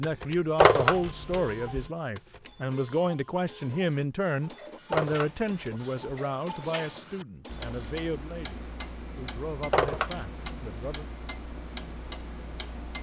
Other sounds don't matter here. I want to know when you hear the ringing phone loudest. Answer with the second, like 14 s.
1 s.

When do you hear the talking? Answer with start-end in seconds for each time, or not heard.
0.0-11.1.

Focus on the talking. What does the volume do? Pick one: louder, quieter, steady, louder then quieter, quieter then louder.
quieter.